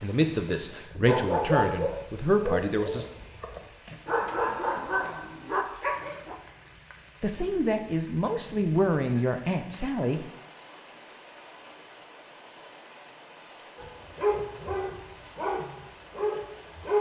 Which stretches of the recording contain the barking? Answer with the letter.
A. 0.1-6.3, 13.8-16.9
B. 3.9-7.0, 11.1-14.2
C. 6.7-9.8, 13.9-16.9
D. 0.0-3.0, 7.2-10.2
A.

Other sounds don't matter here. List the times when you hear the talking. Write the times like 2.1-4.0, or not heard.
0.0-3.0, 7.2-10.2.